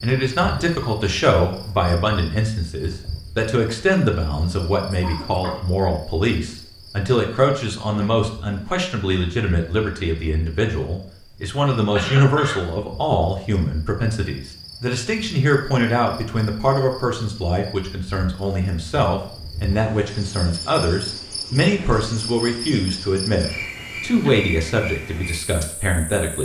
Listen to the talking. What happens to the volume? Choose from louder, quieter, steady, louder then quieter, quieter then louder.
steady.